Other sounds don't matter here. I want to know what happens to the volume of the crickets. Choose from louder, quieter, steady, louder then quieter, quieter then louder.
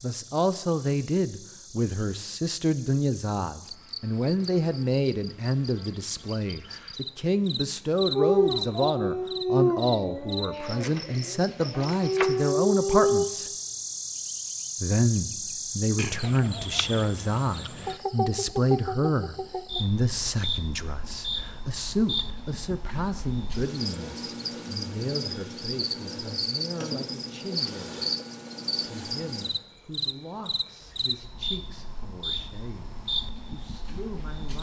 louder.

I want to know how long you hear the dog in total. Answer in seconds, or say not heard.
5 s.